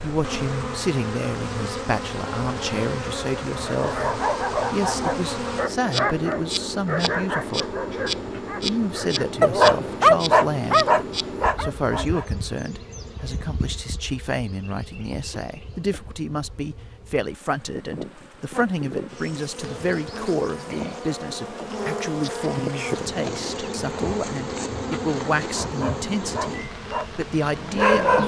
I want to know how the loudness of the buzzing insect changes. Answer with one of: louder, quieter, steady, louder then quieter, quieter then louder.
quieter then louder.